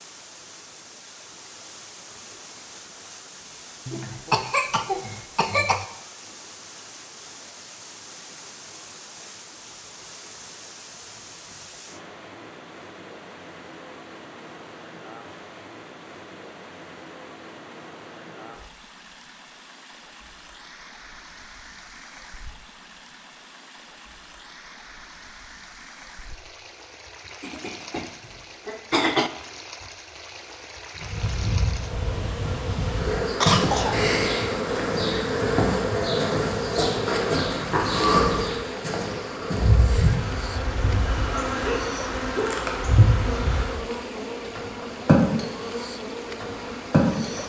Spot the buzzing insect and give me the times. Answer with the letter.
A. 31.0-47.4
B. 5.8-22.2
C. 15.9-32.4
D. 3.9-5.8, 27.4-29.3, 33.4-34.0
A.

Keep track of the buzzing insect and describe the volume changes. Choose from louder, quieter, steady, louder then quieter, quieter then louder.
steady.